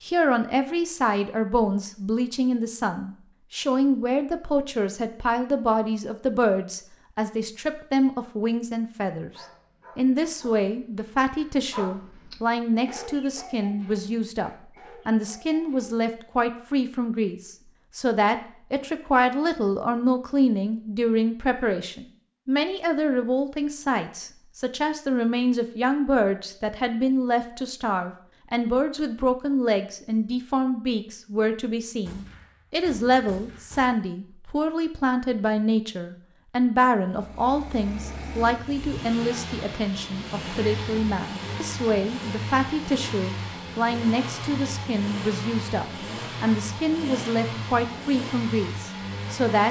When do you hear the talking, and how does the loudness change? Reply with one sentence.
The talking can be heard from 0.0 to 49.6 s, at a steady volume.